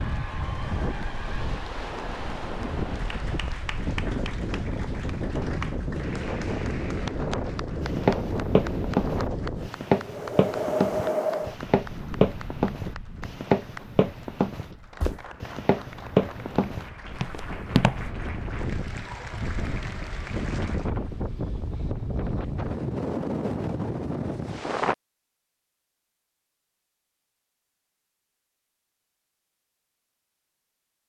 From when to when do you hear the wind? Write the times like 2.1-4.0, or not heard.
0.0-24.9.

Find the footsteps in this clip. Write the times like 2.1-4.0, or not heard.
7.8-18.1.